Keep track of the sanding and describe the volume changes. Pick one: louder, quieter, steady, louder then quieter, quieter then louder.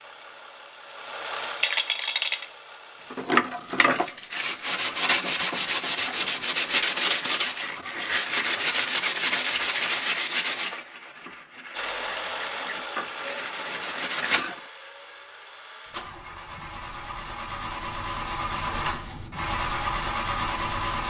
quieter.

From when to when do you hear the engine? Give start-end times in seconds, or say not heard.
0.0-3.2, 11.7-21.0.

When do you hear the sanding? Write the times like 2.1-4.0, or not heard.
3.1-14.6.